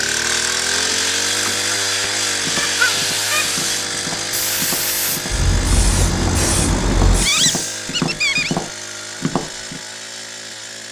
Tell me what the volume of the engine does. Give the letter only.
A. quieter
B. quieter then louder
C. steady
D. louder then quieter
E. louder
A.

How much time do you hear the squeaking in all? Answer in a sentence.
The squeaking can be heard for 2 seconds in total.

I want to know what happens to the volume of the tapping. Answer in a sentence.
The volume of the tapping goes up.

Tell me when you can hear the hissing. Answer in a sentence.
You can hear the hissing from 0.0 to 7.8 s.